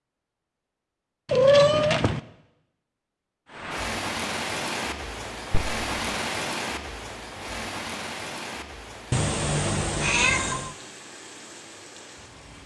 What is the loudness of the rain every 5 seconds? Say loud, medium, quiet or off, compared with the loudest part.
loud, loud, quiet.